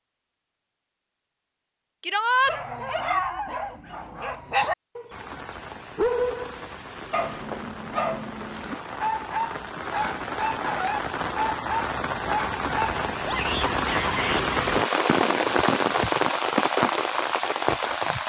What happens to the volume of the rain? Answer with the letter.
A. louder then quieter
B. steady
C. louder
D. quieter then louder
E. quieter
C.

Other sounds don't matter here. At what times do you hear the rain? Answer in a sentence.
You can hear the rain from 5.1 to 18.2 s.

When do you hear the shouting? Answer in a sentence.
The shouting can be heard from 2.0 to 2.5 s and from 13.2 to 14.4 s.